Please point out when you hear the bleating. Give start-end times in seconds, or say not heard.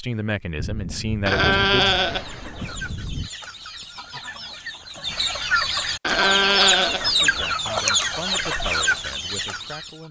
1.2-2.8, 6.0-7.5.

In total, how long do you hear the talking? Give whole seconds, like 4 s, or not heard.
5 s.